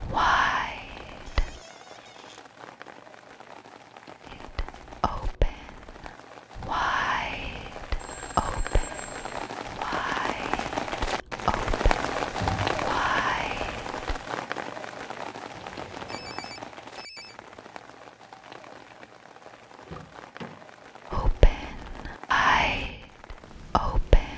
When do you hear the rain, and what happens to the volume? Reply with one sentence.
You can hear the rain from 0.0 to 24.3 s, getting louder then quieter.